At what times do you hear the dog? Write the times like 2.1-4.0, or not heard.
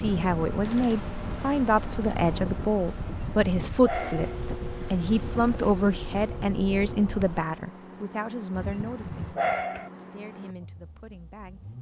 3.0-4.4, 8.5-9.9.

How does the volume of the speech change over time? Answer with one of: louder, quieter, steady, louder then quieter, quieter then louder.
quieter.